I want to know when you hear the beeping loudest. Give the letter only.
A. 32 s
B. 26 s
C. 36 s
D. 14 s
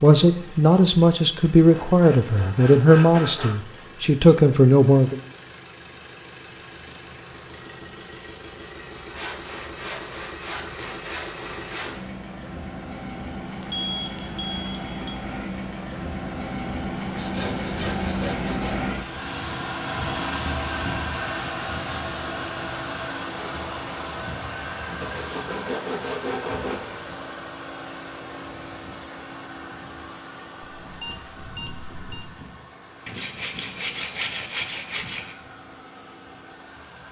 D.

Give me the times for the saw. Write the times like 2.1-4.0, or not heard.
1.7-3.5, 9.2-12.1, 17.1-18.8, 25.0-26.9, 33.0-35.4.